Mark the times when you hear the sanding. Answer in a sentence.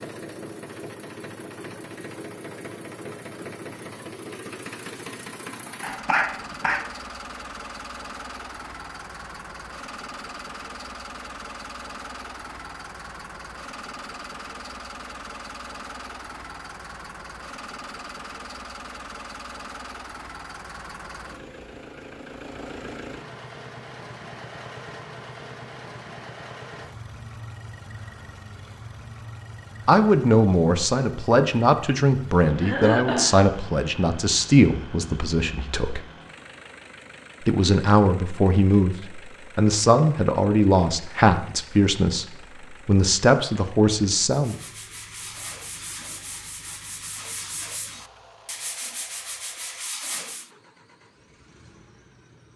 The sanding can be heard from 44.3 to 50.5 s.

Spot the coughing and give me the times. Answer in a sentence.
You can hear the coughing from 5.8 to 6.8 s and from 32.6 to 33.4 s.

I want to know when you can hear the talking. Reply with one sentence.
The talking can be heard from 29.9 to 36.0 s and from 37.4 to 44.5 s.